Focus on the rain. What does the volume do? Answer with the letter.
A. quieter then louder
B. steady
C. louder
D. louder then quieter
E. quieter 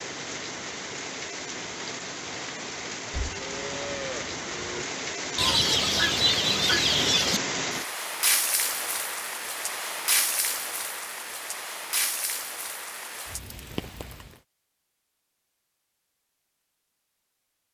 D.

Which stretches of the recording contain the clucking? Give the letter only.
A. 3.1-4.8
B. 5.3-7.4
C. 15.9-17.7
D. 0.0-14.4
B.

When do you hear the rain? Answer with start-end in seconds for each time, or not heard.
0.0-14.4.